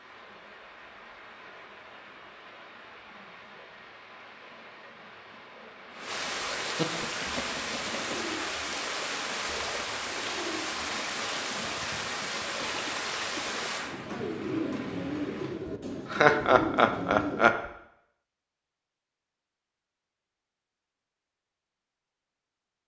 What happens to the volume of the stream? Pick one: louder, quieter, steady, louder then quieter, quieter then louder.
louder.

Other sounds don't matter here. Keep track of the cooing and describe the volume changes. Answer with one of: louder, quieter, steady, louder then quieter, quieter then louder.
louder.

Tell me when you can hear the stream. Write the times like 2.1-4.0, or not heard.
0.0-15.7.